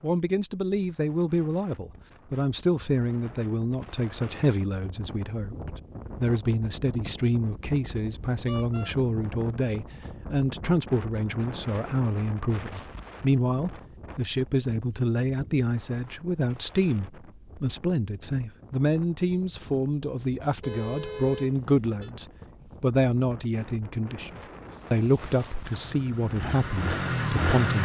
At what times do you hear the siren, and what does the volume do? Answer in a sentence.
The siren can't be heard in this clip.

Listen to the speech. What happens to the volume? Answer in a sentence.
The volume of the speech stays about the same.